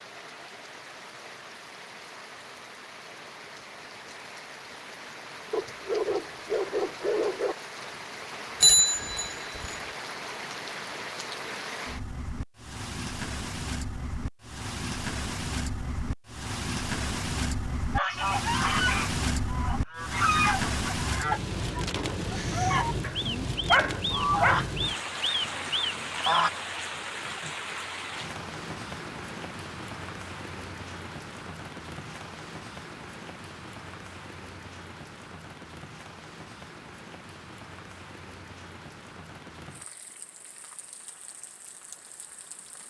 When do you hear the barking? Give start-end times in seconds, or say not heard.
5.5-7.5, 23.0-24.7.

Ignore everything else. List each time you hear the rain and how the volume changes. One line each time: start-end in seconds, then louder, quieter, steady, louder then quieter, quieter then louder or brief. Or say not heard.
0.0-42.8 louder then quieter.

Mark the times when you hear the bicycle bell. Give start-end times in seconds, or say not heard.
8.6-9.8.